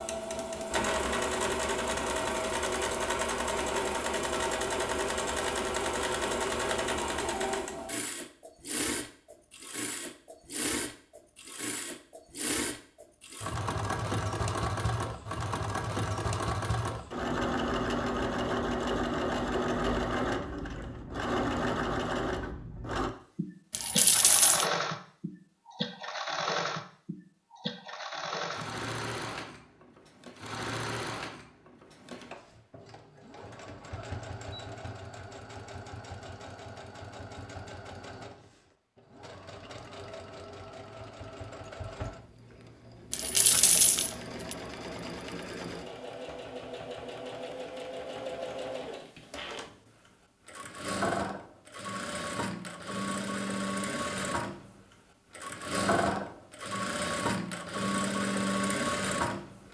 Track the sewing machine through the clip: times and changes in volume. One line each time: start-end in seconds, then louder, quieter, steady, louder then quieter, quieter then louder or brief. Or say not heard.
0.0-59.6 quieter then louder.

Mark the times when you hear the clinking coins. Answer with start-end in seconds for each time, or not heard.
23.7-24.6, 43.1-44.5.